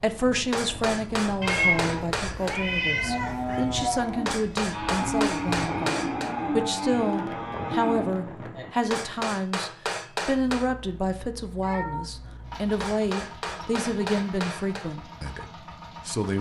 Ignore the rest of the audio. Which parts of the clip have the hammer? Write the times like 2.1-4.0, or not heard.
0.5-2.6, 4.2-6.3, 8.9-10.7, 12.8-14.8.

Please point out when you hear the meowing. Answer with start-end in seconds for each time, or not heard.
1.4-3.6, 10.3-12.9.